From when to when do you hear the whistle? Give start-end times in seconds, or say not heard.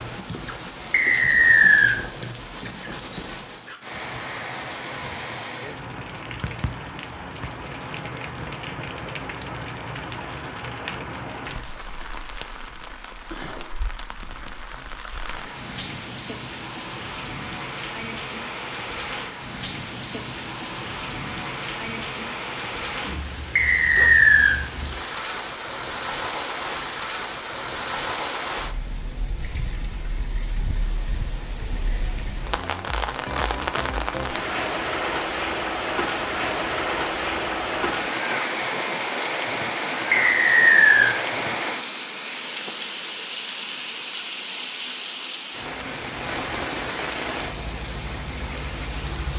0.9-1.9, 23.6-24.6, 40.1-41.1.